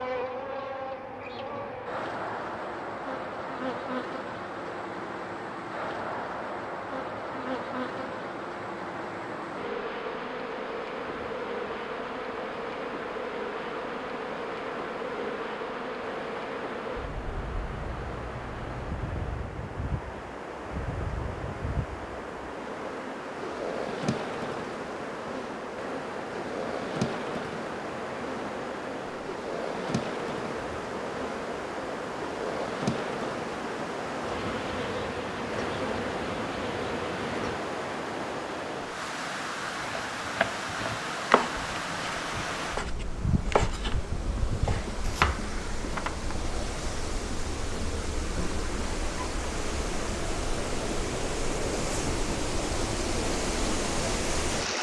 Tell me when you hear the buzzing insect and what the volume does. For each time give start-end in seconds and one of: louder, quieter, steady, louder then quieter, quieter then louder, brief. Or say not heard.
0.0-37.6 steady.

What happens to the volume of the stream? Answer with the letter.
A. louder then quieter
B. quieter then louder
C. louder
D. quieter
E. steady
C.